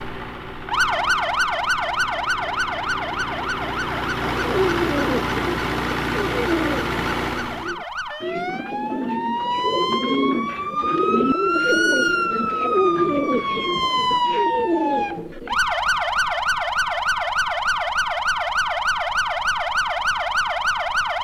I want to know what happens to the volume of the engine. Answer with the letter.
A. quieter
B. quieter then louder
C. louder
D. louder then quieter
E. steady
C.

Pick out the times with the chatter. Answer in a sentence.
You can't hear the chatter here.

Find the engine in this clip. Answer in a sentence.
You can hear the engine from 0.0 to 7.8 s.